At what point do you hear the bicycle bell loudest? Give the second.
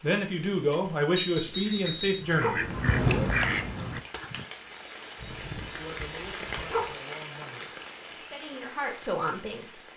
2 s.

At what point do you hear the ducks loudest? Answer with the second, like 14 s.
3 s.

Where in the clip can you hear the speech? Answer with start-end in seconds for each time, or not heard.
0.0-2.7, 5.8-9.8.